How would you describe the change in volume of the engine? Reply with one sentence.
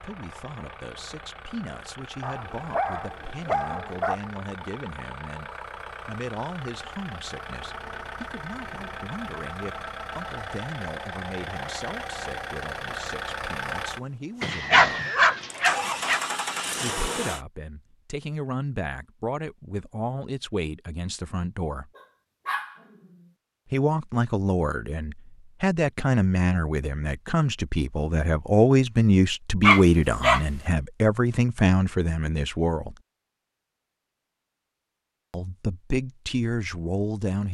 The loudness of the engine goes up.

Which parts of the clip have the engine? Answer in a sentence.
The engine can be heard from 0.0 to 17.4 s.